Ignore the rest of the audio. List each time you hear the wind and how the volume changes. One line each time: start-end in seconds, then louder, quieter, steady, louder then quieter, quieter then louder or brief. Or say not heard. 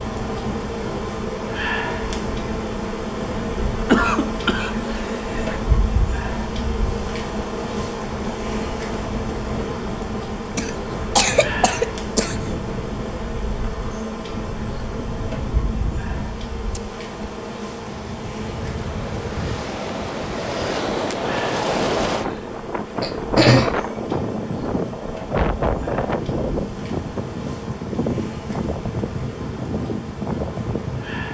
0.0-31.2 louder.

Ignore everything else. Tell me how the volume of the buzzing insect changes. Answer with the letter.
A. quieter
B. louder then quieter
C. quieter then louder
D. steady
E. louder
A.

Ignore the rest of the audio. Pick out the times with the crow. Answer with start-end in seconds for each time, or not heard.
not heard.